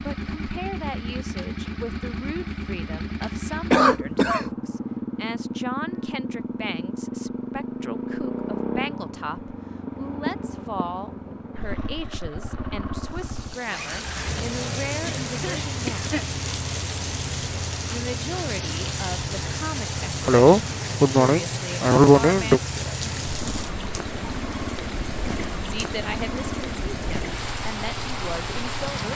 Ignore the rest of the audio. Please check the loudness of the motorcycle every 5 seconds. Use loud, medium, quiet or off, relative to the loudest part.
loud, loud, loud, loud, loud, medium.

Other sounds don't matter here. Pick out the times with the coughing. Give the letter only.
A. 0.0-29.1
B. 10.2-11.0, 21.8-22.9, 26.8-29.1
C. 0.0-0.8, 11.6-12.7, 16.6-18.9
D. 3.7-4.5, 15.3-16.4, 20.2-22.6
D.